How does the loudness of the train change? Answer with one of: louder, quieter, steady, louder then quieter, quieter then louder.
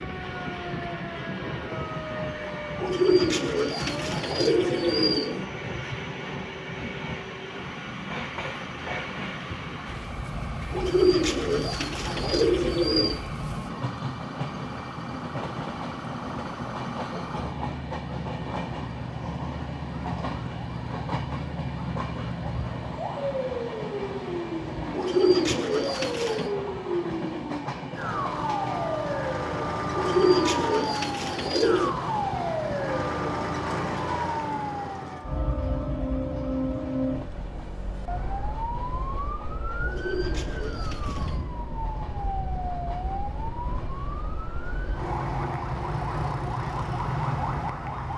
quieter.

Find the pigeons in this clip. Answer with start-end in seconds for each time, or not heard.
2.8-5.5, 10.7-13.2, 24.9-26.5, 29.9-31.9, 39.8-41.4.